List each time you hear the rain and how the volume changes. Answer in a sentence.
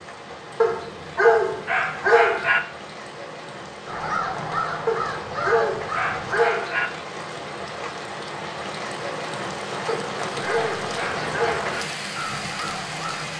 The rain can be heard from 0.0 to 13.3 s, getting louder.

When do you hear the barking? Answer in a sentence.
The barking can be heard from 0.6 to 2.6 s, from 4.8 to 6.9 s and from 9.8 to 11.8 s.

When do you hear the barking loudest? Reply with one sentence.
The loudest moment of the barking is at 1 second.